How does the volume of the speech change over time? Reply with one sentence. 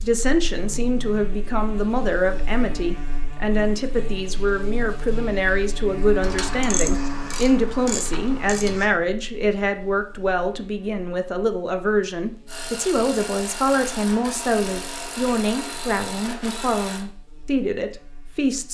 The volume of the speech stays about the same.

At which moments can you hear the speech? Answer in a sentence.
You can hear the speech from 0.0 to 18.6 s.